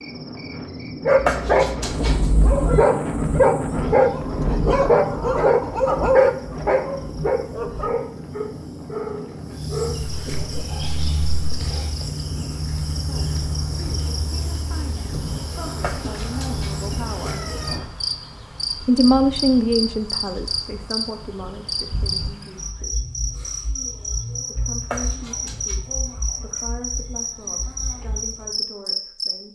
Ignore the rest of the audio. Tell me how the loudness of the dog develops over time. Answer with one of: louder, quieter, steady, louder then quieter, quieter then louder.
quieter.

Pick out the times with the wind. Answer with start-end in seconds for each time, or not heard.
0.0-17.9.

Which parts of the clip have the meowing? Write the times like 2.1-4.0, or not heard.
1.1-2.9, 15.8-17.8, 24.8-25.8.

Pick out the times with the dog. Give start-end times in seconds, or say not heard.
1.1-11.8.